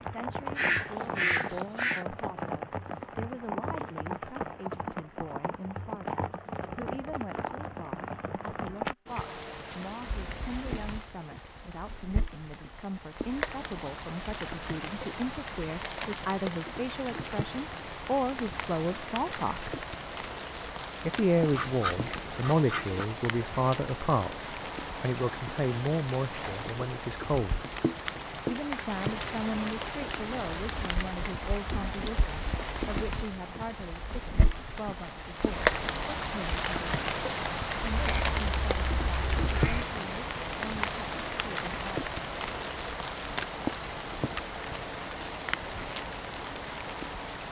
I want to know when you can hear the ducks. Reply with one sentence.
You can hear the ducks from 0.6 to 2.0 s, from 21.5 to 23.1 s and from 37.9 to 39.9 s.